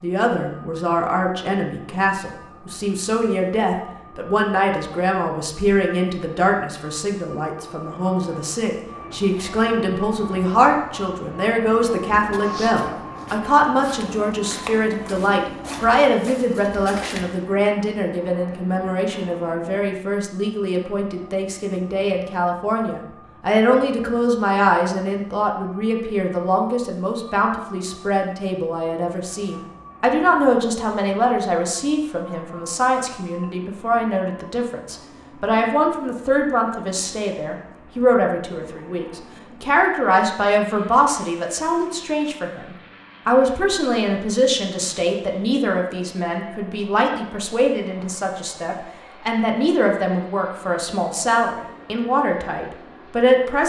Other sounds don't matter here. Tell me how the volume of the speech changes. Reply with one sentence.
The loudness of the speech stays about the same.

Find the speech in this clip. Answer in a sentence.
The speech can be heard from 0.0 to 53.6 s.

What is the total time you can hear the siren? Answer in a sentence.
The siren can't be heard in this clip.